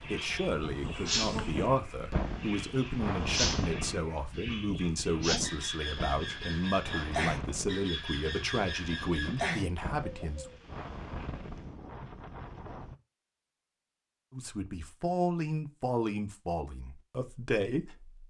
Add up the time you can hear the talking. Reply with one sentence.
The talking can be heard for 14 seconds in total.